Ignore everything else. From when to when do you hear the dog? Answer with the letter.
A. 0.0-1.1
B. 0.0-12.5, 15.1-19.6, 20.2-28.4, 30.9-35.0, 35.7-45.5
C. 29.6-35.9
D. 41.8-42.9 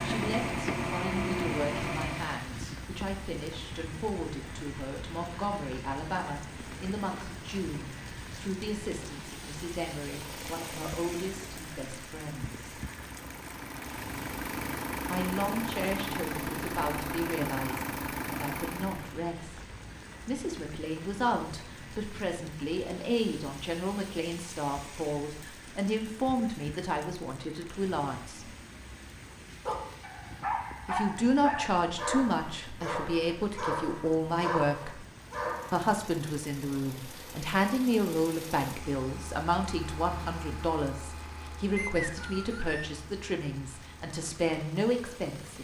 C.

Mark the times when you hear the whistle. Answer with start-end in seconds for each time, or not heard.
41.8-42.9.